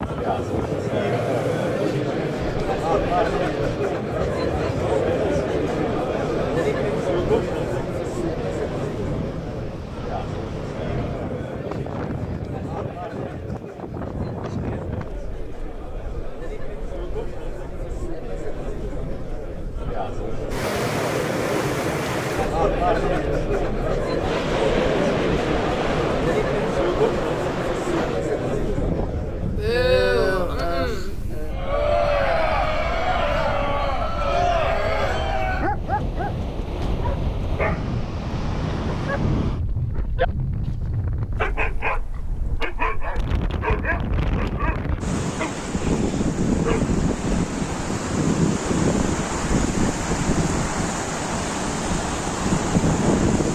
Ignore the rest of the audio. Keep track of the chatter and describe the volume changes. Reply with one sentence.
The volume of the chatter goes down, then up.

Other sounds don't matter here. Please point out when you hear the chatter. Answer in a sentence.
The chatter can be heard from 0.0 to 35.7 s.